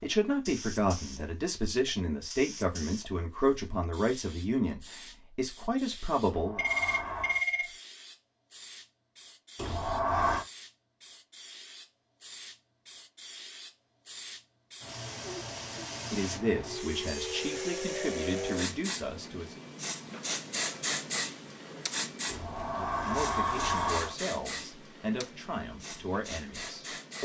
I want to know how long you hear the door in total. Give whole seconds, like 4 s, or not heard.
4 s.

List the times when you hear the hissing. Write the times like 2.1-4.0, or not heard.
0.0-27.2.